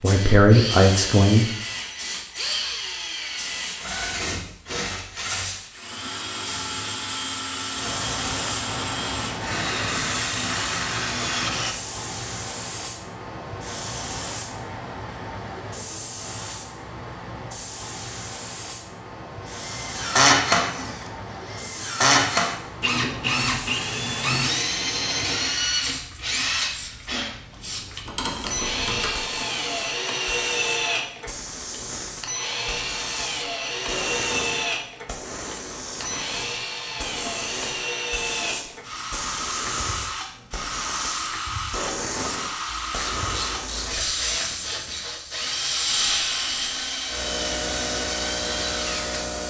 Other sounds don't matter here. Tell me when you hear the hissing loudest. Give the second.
46 s.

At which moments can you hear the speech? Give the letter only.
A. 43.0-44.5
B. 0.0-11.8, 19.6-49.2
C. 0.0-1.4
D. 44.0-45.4
C.